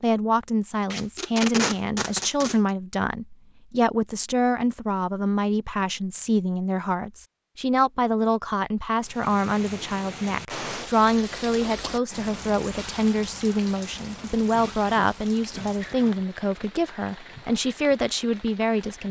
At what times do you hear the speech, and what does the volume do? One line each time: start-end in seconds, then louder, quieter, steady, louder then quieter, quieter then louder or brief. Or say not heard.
0.0-19.0 steady.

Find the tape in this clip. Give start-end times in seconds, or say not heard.
0.9-2.6.